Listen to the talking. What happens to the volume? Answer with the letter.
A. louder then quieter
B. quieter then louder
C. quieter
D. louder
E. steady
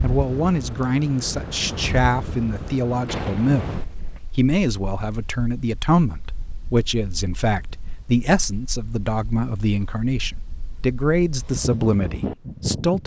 E.